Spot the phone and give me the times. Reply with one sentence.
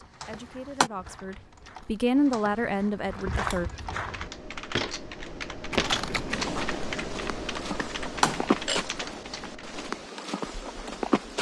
You can hear the phone from 0.2 to 0.9 s and from 8.2 to 8.8 s.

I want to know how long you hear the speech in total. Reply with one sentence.
The speech can be heard for 4 seconds in total.